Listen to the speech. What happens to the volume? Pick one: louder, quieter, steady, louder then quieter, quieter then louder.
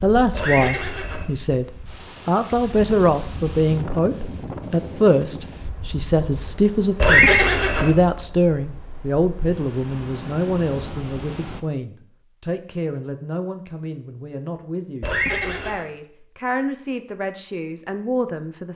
quieter.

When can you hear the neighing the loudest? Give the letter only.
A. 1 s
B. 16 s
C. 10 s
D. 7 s
D.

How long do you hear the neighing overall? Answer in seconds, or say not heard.
3 s.